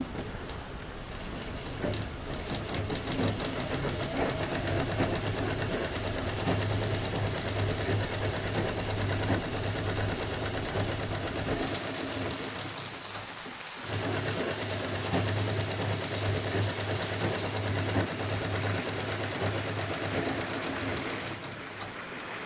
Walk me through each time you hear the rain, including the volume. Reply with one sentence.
You can hear the rain from 0.0 to 22.4 s, at a steady volume.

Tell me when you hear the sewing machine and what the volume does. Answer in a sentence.
You can hear the sewing machine from 0.0 to 22.4 s, at a steady volume.